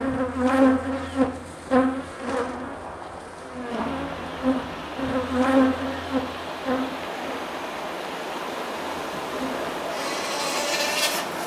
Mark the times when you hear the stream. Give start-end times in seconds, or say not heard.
3.6-11.4.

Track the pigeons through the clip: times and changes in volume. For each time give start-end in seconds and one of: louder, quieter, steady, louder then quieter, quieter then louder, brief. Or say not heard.
not heard.